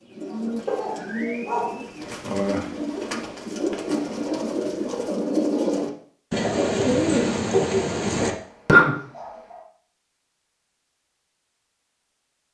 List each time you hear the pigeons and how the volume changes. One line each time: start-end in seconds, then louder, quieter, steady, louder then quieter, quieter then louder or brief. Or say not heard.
0.0-8.9 louder.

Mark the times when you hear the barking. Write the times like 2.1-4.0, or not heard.
0.7-1.9, 8.2-9.7.